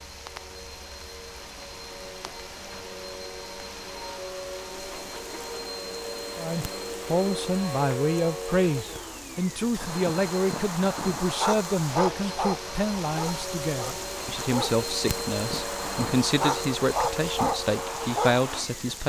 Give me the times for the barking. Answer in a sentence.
You can hear the barking from 9.8 to 18.6 s.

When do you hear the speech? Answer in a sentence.
The speech can be heard from 6.3 to 19.0 s.